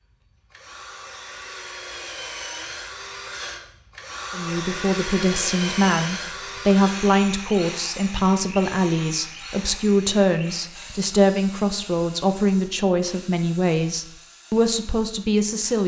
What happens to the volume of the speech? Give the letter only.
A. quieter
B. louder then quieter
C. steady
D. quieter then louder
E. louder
C.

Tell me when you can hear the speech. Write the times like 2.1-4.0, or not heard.
4.3-15.8.